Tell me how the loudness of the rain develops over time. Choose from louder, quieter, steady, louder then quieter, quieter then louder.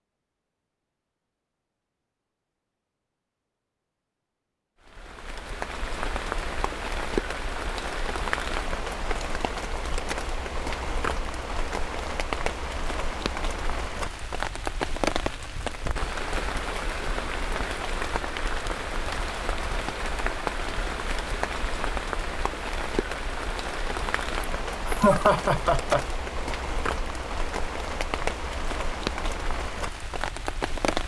steady.